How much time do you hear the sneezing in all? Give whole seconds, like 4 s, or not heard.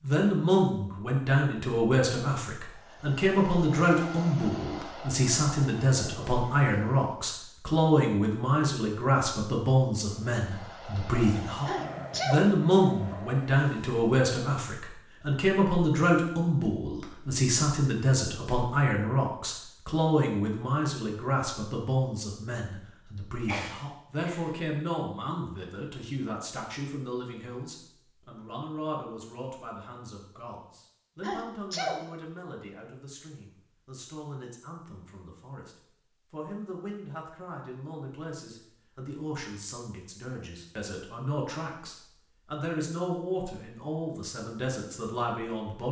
3 s.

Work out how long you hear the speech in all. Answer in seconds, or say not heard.
46 s.